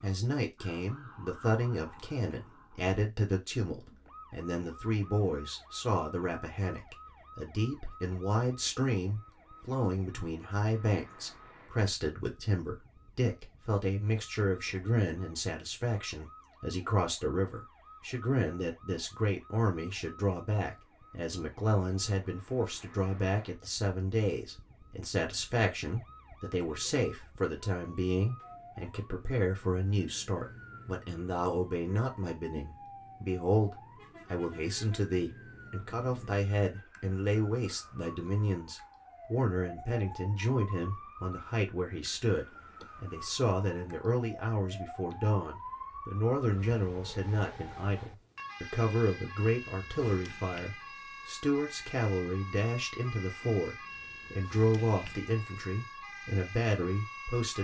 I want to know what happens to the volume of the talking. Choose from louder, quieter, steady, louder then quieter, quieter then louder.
steady.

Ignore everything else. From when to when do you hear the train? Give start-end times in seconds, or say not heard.
not heard.